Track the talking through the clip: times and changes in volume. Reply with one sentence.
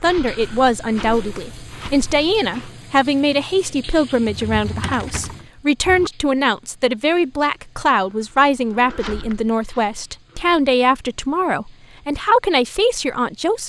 You can hear the talking from 0.0 to 13.6 s, at a steady volume.